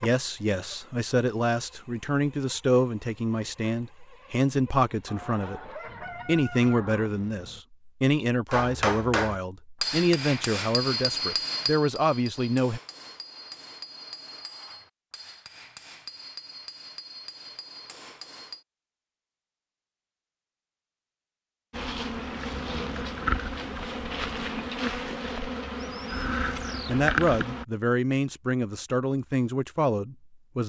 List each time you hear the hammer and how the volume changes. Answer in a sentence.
The hammer can be heard from 8.5 to 18.6 s, getting quieter.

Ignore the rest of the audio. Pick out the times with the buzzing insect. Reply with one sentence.
The buzzing insect can be heard from 0.0 to 7.7 s and from 21.7 to 27.6 s.